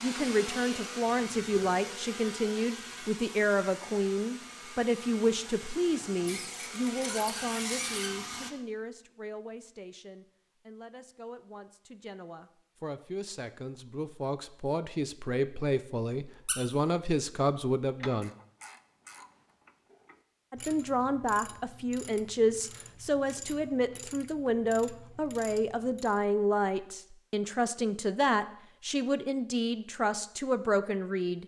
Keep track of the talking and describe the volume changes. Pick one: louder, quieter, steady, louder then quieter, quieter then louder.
quieter then louder.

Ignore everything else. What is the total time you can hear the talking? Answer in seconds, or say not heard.
29 s.